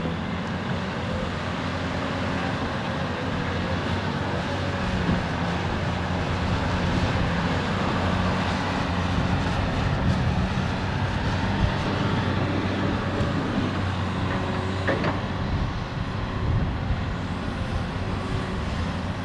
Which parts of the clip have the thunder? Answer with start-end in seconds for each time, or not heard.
11.8-13.8.